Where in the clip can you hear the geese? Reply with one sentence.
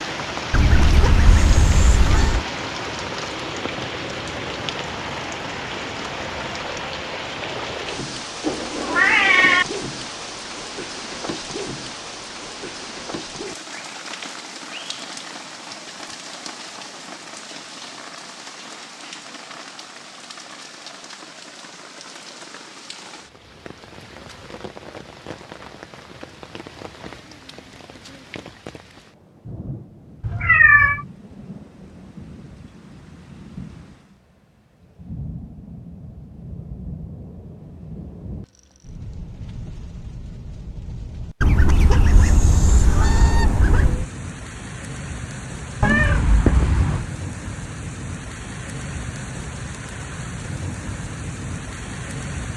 You can hear the geese from 0.5 to 2.5 s and from 41.4 to 44.0 s.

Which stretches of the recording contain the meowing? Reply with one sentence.
You can hear the meowing from 8.4 to 9.7 s, from 30.2 to 31.1 s and from 45.8 to 47.1 s.